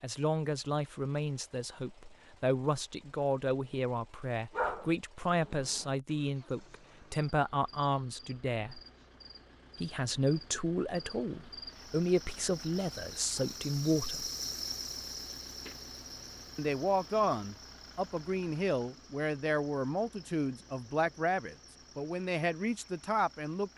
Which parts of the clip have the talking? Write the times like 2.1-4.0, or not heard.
0.0-8.8, 9.8-14.3, 16.6-23.7.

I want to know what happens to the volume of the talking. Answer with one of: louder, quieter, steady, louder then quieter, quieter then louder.
steady.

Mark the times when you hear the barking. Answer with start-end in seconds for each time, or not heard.
4.5-5.9.